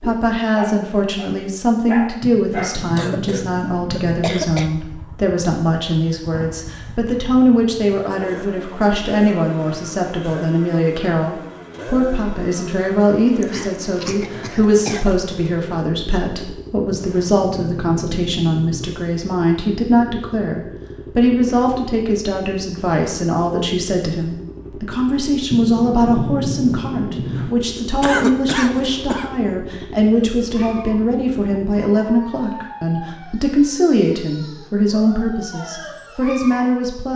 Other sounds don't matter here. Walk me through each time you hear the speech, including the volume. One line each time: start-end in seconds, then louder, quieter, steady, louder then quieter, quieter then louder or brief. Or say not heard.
0.0-37.1 steady.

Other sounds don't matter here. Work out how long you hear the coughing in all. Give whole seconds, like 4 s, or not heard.
5 s.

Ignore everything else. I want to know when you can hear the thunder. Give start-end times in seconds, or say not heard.
2.2-4.2, 16.9-18.9, 25.5-27.5.